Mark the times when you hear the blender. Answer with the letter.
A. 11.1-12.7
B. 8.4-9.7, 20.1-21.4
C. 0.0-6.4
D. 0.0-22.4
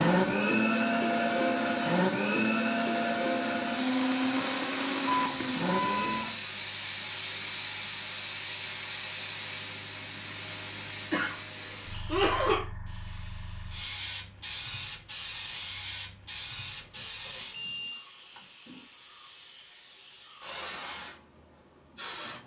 C.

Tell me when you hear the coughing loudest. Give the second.
12 s.